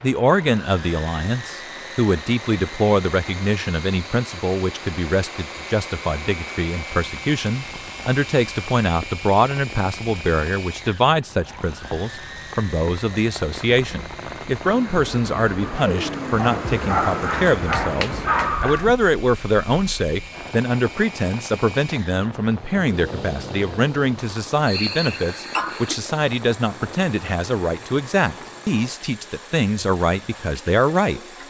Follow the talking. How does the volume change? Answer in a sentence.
The volume of the talking stays about the same.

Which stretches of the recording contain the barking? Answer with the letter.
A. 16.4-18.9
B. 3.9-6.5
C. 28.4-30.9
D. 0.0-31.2
A.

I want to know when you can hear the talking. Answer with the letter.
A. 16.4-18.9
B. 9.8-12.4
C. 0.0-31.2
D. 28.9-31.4
C.